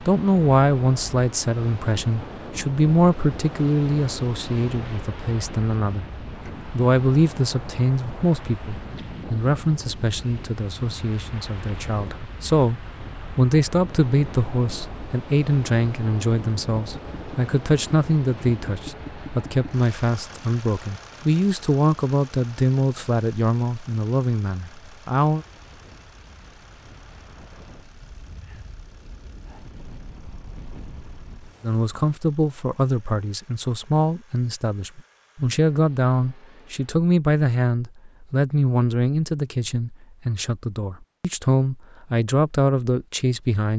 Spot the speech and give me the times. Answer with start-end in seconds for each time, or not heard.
0.0-25.4, 31.6-43.7.